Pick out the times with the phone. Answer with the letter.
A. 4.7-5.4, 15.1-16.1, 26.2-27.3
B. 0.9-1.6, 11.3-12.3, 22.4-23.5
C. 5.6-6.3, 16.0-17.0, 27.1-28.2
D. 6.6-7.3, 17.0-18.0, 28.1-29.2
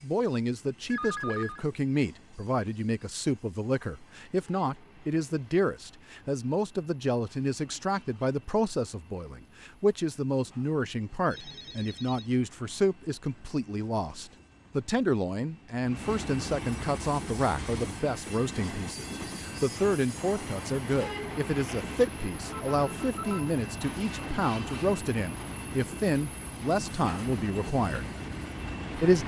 B.